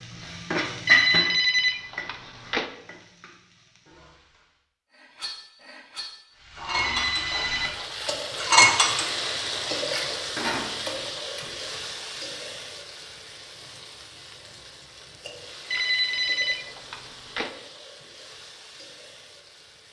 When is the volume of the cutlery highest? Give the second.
9 s.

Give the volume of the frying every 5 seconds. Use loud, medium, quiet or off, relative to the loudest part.
loud, loud, medium, quiet.